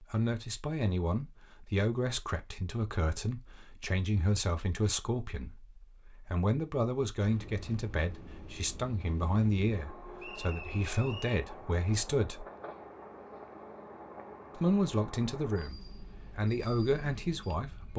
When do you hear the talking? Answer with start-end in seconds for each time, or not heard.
0.0-12.4, 14.6-17.9.